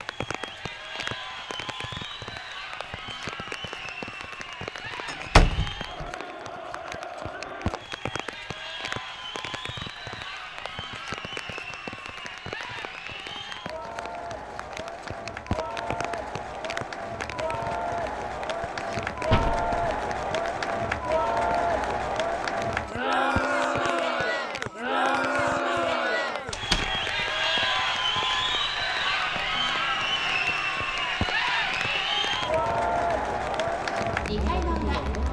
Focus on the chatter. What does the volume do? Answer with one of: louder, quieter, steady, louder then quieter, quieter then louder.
louder.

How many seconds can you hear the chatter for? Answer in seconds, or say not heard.
35 s.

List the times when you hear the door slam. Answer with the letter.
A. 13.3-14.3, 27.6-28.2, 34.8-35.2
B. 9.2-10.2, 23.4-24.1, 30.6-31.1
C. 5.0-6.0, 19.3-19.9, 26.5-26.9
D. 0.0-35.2
C.